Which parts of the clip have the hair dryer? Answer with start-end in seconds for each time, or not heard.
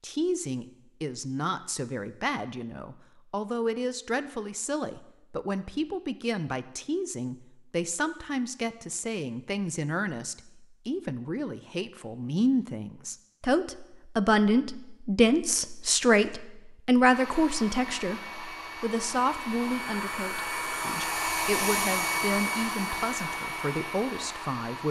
17.1-24.8.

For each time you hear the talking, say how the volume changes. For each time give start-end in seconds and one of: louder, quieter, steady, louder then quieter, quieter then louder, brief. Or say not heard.
0.0-24.8 louder then quieter.